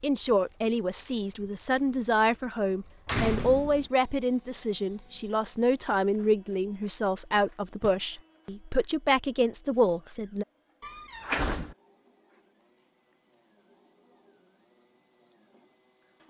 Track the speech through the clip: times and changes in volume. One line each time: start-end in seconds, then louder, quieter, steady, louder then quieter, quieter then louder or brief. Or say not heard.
0.0-10.4 steady.